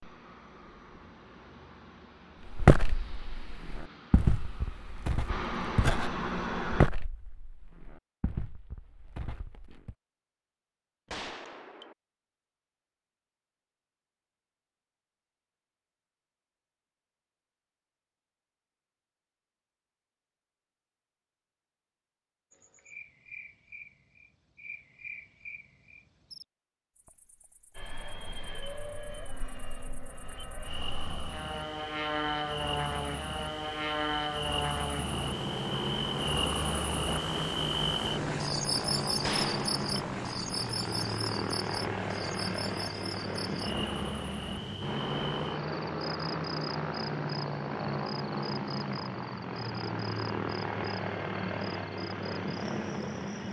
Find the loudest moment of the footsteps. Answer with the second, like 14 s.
3 s.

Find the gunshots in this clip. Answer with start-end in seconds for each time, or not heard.
11.1-11.9, 39.2-39.9.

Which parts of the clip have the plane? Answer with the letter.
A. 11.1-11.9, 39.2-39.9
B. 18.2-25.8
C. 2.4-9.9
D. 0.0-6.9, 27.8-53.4
D.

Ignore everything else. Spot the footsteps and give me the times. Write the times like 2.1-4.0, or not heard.
2.4-9.9.